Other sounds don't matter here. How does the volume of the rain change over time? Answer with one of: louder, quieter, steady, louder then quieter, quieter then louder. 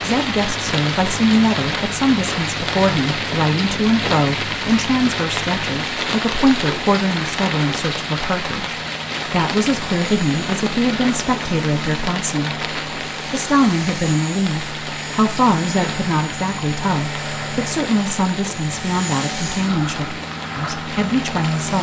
quieter.